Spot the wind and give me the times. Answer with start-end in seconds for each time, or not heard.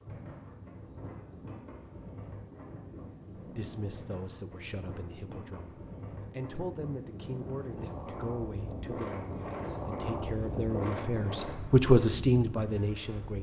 0.0-13.3.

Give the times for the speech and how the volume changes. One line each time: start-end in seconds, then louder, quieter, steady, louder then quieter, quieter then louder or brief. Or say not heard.
3.4-13.3 louder.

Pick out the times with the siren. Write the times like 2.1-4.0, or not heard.
not heard.